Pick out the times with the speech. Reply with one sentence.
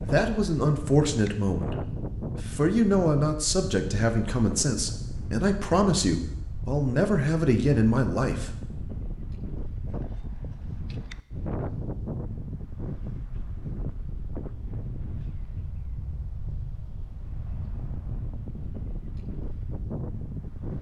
You can hear the speech from 0.0 to 1.8 s and from 2.4 to 8.5 s.